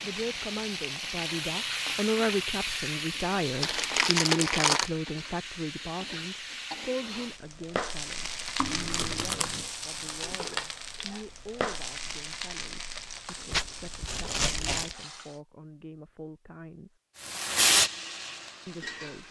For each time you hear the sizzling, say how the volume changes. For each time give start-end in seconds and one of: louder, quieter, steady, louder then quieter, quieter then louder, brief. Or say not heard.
0.0-15.4 quieter
17.2-19.2 brief.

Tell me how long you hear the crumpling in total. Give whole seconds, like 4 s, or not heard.
4 s.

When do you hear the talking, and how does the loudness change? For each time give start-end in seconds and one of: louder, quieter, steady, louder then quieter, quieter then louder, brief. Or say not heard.
0.0-17.0 quieter
18.6-19.2 brief.